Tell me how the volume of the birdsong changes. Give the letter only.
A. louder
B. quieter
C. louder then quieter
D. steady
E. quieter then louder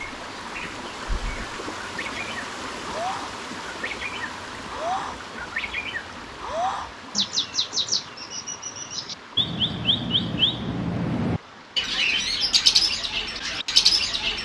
A.